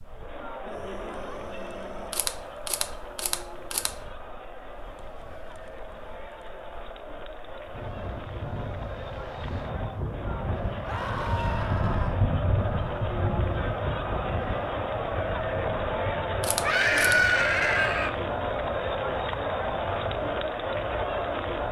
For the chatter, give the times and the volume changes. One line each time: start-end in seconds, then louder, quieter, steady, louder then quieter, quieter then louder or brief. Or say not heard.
0.0-21.6 louder.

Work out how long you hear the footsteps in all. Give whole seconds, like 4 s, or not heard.
not heard.